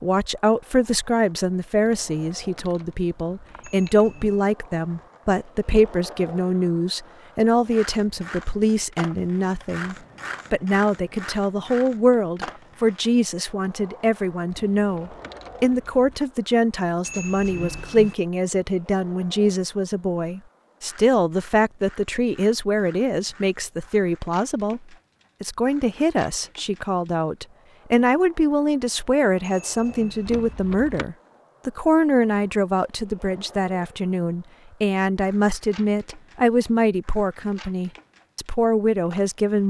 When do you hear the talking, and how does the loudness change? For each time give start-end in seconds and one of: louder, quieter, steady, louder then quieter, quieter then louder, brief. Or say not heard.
0.0-24.8 steady
25.4-39.6 steady.